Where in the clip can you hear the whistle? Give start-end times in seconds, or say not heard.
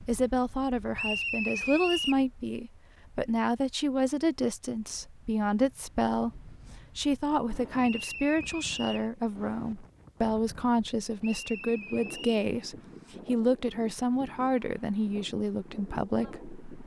0.9-2.2, 7.8-9.1, 11.2-12.4.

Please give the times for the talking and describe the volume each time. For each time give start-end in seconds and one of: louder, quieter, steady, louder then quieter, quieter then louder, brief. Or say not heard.
0.0-16.8 steady.